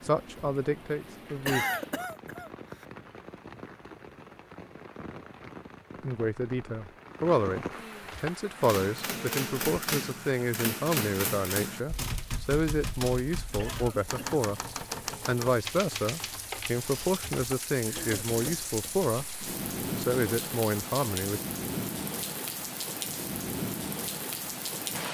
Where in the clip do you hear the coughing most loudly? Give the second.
2 s.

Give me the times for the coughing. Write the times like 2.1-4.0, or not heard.
1.4-2.9, 13.6-14.4, 17.9-18.4.